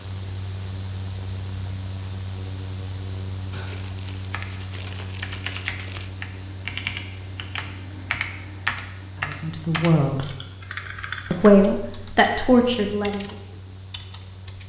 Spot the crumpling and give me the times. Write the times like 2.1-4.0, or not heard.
3.5-6.2.